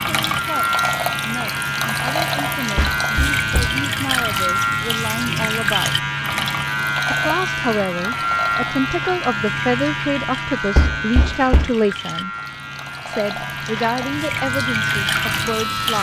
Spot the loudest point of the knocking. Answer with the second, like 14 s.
11 s.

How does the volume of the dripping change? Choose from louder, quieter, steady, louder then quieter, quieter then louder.
quieter then louder.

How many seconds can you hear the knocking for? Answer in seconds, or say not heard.
2 s.